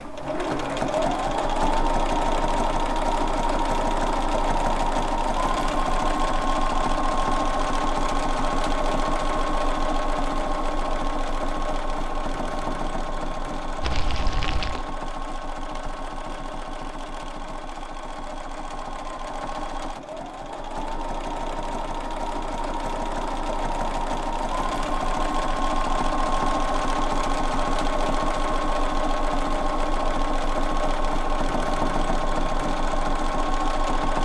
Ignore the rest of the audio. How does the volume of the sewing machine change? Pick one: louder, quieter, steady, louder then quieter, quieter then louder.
quieter then louder.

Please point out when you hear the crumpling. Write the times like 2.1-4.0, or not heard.
13.8-14.8.